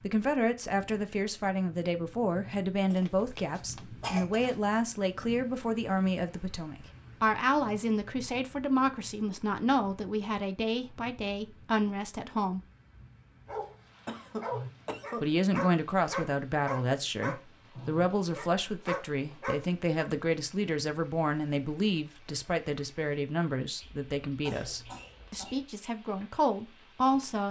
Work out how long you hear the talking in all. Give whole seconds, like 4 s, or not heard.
25 s.